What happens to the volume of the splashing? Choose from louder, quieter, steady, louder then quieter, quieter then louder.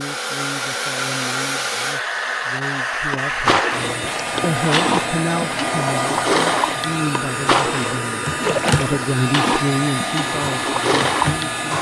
steady.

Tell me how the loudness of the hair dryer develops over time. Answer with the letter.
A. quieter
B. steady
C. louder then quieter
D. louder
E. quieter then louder
B.